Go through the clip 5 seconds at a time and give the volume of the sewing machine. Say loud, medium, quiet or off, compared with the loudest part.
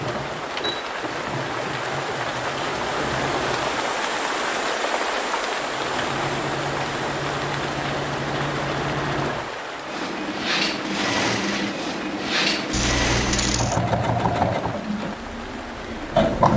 medium, medium, loud, loud.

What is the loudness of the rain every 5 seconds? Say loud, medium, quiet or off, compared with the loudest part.
loud, loud, medium, medium.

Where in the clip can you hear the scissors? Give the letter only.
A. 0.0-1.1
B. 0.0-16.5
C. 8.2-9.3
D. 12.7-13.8
D.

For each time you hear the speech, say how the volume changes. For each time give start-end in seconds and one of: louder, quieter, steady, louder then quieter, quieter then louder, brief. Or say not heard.
not heard.